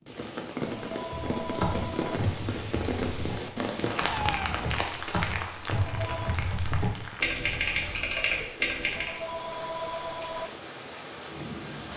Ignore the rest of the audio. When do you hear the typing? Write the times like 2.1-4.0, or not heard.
1.1-9.2.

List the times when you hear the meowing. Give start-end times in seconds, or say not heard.
4.1-4.8.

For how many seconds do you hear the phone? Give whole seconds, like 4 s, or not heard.
4 s.